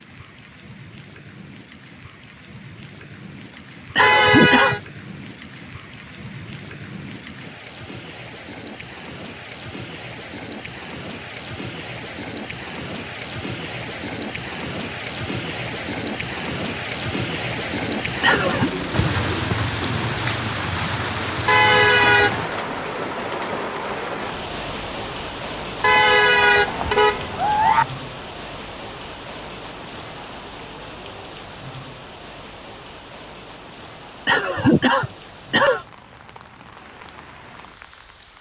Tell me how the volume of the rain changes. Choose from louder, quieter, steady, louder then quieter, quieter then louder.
louder then quieter.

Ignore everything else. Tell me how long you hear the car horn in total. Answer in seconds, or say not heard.
4 s.